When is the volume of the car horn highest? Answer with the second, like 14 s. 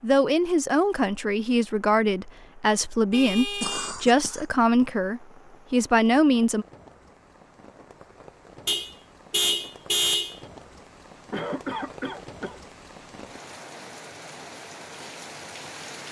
10 s.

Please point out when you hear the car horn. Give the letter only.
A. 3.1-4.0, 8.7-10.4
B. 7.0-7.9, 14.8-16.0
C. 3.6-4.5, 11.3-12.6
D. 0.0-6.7
A.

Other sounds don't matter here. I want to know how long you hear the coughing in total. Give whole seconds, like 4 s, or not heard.
2 s.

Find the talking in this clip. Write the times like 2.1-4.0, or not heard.
0.0-6.7.